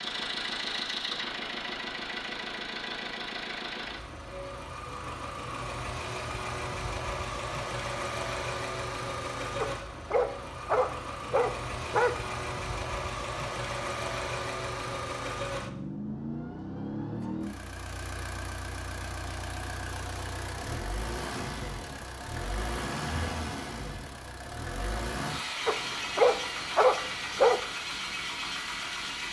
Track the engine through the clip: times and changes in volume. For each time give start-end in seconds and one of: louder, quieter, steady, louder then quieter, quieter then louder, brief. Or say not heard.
0.0-29.2 steady.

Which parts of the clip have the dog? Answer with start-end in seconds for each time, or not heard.
9.6-12.2, 25.6-27.6.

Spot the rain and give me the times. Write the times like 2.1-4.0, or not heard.
not heard.